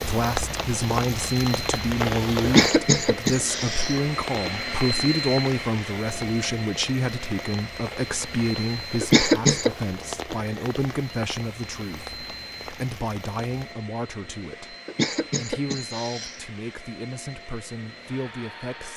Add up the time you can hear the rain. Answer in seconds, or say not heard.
14 s.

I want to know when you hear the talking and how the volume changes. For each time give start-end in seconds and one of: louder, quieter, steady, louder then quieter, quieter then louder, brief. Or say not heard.
0.0-18.9 quieter.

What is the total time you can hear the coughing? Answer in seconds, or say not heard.
4 s.